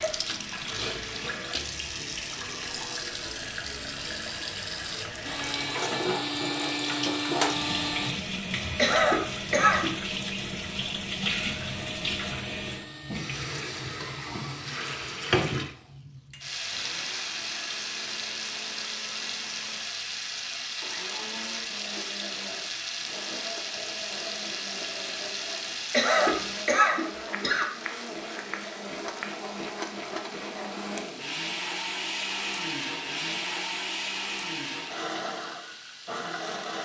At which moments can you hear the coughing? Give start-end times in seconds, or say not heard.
8.8-9.9, 25.9-27.7.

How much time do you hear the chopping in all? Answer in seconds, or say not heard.
2 s.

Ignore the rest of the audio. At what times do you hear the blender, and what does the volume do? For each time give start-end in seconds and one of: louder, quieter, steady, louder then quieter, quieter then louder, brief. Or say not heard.
5.2-8.1 brief
11.7-36.8 louder.